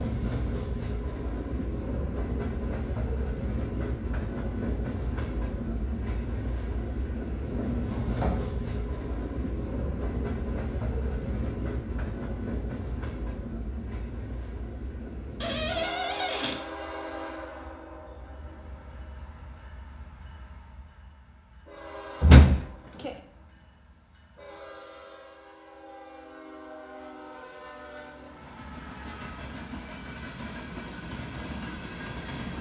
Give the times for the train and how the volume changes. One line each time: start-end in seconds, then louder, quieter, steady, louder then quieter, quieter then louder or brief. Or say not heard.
0.0-32.5 quieter then louder.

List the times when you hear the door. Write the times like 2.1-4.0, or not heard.
7.5-8.3, 15.4-16.6, 22.2-23.1.